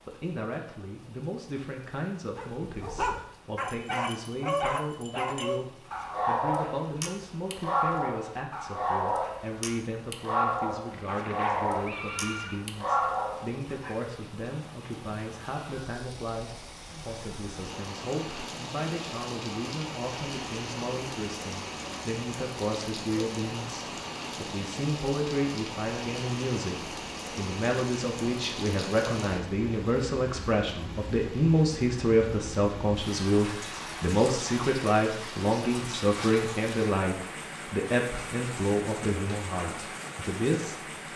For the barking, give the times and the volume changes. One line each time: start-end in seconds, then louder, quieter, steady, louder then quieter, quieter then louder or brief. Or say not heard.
2.4-13.9 steady.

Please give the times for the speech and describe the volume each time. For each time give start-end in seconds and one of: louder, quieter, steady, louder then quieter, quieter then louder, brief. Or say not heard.
0.0-41.1 louder.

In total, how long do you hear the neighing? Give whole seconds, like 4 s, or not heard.
2 s.